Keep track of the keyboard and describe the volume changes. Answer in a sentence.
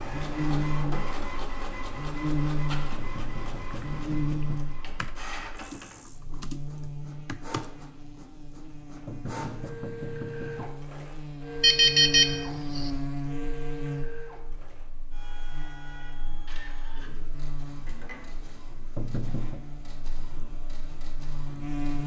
The loudness of the keyboard goes up.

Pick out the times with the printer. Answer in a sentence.
You can hear the printer from 0.0 to 22.0 s.